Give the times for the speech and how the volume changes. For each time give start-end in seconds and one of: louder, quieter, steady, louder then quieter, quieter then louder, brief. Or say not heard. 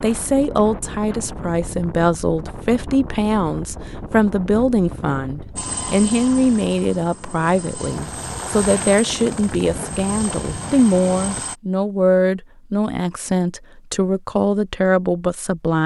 0.0-15.8 steady.